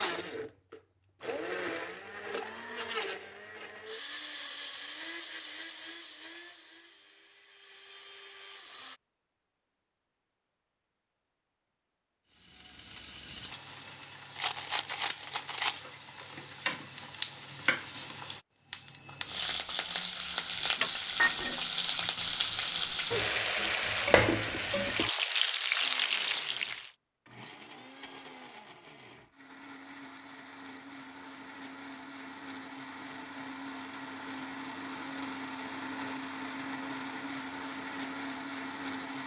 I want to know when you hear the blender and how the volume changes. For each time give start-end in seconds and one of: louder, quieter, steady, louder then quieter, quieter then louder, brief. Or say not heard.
0.0-9.0 quieter
25.8-39.2 louder.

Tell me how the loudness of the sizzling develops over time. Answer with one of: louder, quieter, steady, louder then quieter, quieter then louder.
louder.